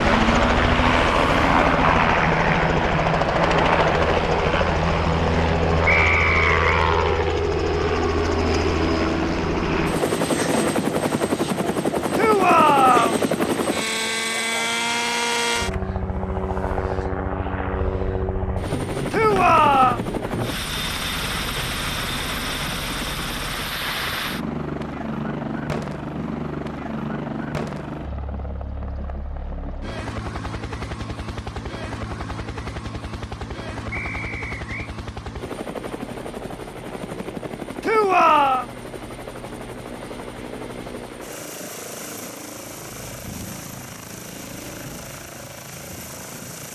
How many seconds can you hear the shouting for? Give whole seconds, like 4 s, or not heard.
3 s.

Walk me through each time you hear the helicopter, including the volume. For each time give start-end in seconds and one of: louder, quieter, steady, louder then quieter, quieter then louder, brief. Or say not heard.
0.0-46.6 quieter.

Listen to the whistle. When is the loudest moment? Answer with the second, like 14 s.
6 s.